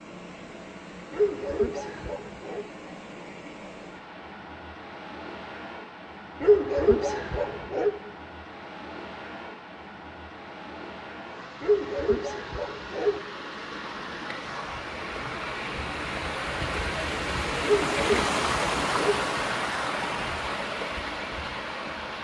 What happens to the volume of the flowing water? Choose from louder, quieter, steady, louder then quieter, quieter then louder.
louder.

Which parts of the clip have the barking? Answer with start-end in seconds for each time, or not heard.
1.1-2.6, 6.4-8.0, 11.6-13.2, 17.6-19.2.